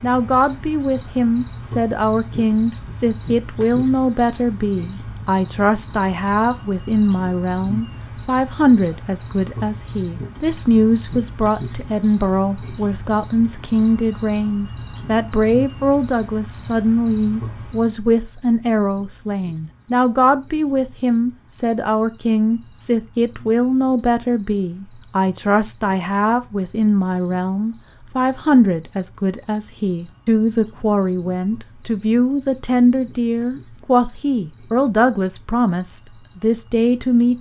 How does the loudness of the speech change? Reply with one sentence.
The volume of the speech stays about the same.